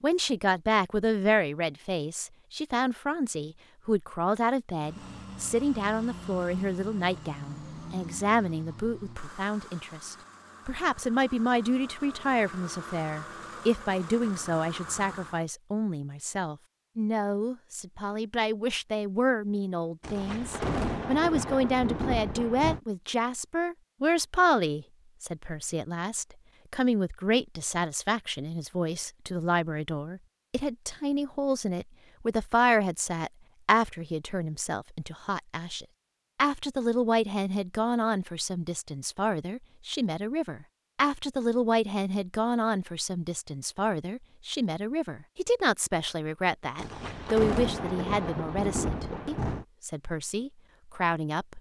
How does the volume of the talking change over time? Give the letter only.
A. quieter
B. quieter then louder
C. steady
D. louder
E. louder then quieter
C.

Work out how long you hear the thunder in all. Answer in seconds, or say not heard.
6 s.